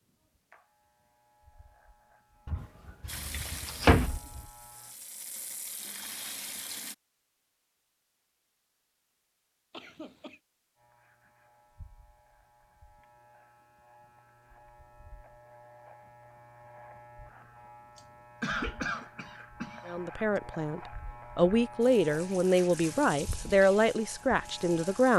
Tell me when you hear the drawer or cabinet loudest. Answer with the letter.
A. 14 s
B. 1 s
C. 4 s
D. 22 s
C.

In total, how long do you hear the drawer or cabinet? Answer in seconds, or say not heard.
2 s.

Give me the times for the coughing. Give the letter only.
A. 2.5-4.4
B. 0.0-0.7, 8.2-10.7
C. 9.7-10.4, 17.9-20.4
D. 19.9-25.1
C.